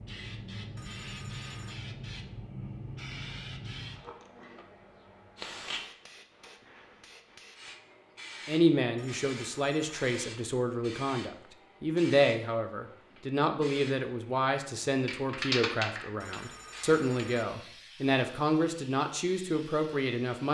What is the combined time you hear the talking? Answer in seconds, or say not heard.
12 s.